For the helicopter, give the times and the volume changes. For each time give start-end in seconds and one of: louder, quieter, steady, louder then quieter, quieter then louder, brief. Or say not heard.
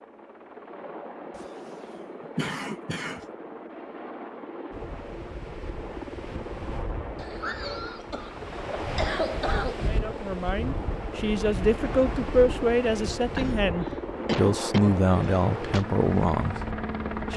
0.0-17.3 louder.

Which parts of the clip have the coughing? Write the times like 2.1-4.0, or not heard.
1.4-3.2, 7.2-9.8, 13.3-15.8.